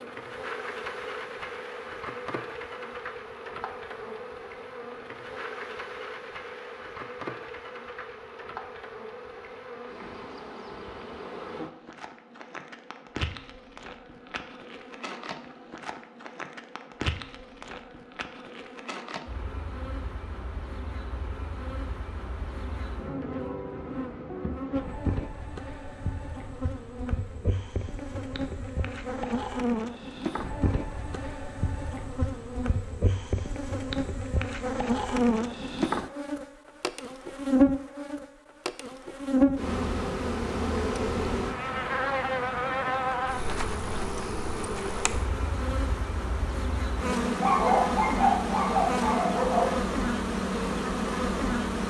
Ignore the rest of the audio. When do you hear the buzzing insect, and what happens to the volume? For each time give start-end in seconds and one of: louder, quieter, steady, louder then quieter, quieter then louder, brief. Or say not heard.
0.0-51.8 louder.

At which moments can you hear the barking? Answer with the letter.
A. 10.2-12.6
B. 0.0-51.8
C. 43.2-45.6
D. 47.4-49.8
D.